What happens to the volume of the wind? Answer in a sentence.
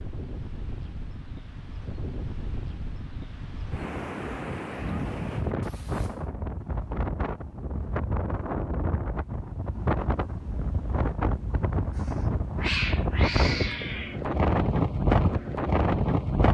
The loudness of the wind goes up.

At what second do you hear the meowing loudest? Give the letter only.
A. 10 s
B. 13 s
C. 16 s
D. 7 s
B.